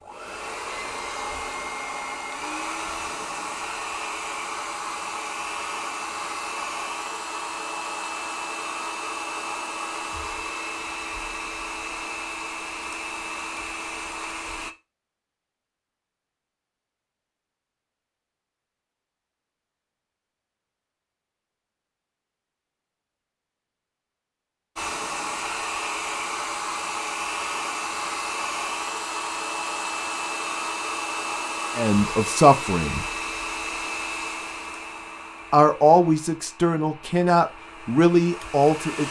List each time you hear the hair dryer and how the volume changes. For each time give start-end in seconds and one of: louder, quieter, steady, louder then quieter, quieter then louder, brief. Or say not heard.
0.0-14.8 steady
24.8-39.0 quieter.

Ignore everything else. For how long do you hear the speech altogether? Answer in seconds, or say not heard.
5 s.